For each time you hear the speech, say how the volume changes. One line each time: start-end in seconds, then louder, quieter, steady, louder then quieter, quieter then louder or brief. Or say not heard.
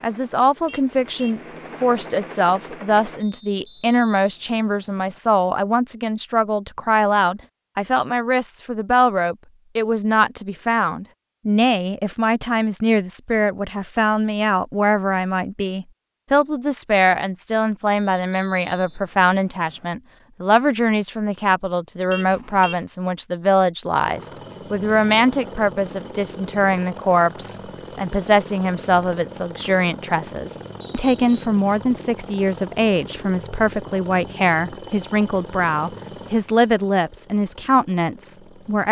0.0-38.8 steady.